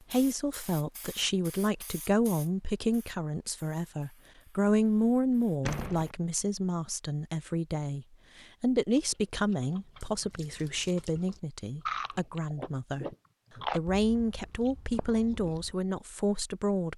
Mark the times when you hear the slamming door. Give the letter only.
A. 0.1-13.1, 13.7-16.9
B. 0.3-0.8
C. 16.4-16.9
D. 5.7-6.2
D.